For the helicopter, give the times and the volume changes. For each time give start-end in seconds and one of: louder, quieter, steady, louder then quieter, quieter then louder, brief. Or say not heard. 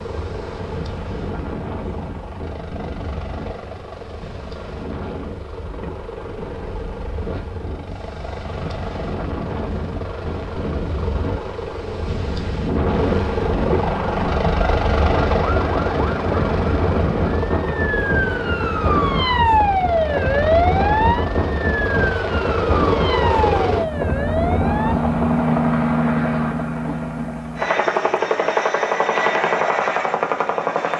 0.0-30.9 louder.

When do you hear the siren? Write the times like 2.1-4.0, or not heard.
13.9-24.9.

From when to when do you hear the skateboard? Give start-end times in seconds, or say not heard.
not heard.